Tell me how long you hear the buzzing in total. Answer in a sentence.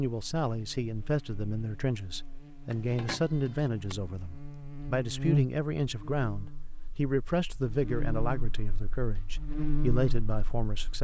The buzzing can be heard for 11 seconds in total.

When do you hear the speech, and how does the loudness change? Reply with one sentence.
You can hear the speech from 0.0 to 10.9 s, at a steady volume.